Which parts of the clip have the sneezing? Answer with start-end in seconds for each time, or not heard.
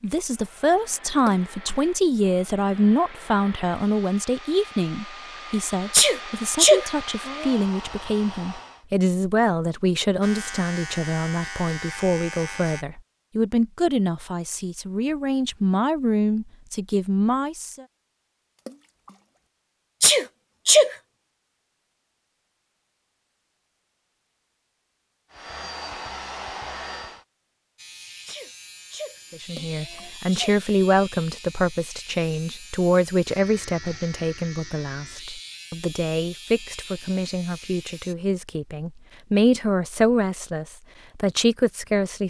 5.9-7.5, 20.0-20.9, 28.2-30.4.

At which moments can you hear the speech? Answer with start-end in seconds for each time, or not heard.
0.0-17.9, 29.3-42.2.